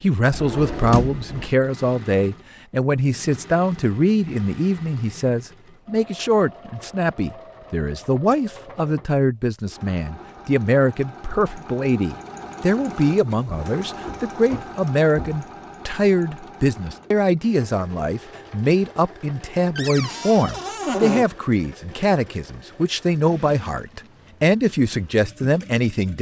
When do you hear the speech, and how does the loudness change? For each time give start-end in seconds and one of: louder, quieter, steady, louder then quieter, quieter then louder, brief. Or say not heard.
0.0-26.1 steady.